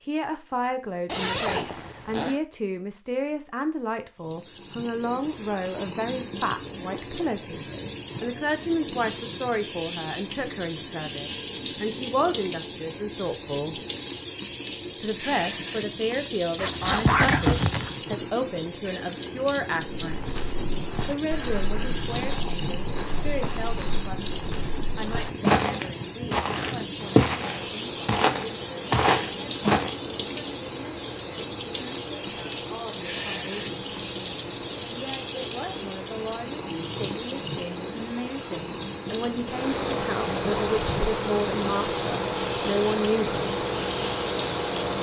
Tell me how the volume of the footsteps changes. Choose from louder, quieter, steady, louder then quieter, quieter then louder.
louder.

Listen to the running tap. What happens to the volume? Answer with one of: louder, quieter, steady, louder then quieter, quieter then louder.
steady.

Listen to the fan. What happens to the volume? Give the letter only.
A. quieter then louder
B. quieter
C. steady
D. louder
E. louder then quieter
D.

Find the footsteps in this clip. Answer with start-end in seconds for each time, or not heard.
20.0-29.9.